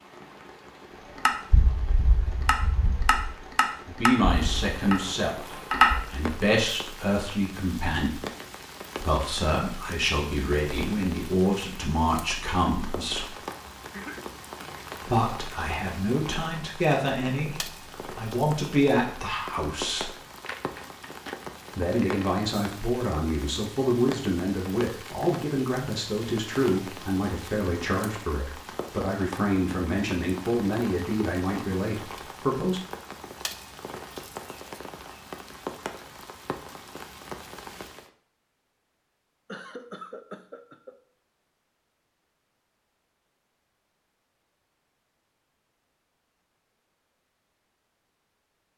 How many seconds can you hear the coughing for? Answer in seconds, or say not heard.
3 s.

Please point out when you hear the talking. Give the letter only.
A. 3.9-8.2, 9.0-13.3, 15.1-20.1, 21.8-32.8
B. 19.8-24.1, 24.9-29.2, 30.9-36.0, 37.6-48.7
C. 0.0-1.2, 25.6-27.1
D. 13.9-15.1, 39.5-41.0
A.